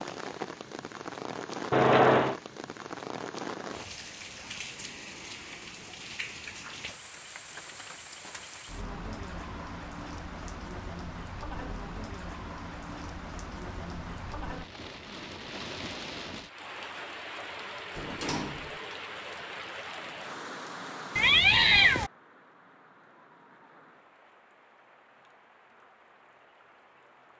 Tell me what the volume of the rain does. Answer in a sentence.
The loudness of the rain goes down.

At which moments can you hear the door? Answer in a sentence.
You can hear the door from 17.9 to 18.8 s.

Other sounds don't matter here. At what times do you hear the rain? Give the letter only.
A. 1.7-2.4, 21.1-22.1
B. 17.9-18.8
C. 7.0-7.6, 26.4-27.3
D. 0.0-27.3
D.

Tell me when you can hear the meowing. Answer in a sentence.
The meowing can be heard from 1.7 to 2.4 s and from 21.1 to 22.1 s.